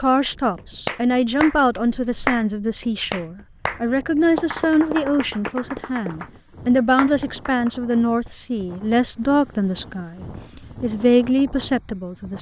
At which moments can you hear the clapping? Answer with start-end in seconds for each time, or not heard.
0.6-7.7.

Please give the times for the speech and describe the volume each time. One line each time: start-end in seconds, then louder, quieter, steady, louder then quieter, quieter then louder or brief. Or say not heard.
0.0-12.3 steady.